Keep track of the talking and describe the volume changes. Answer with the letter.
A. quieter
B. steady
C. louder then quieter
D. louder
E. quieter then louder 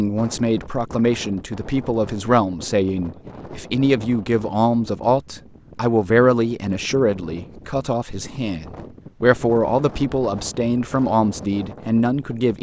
B.